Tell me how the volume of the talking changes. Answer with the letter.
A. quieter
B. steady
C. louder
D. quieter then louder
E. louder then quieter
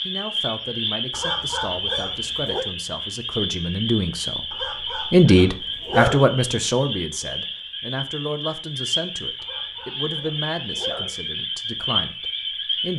E.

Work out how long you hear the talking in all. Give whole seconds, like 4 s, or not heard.
13 s.